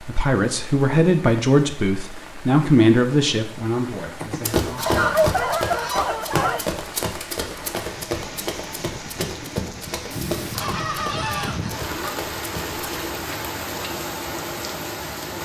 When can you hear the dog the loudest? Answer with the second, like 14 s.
5 s.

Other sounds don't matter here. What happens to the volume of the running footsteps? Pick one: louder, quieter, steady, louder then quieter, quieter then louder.
quieter.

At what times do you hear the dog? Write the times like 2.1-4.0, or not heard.
4.8-6.7.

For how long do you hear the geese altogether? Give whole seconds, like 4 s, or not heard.
4 s.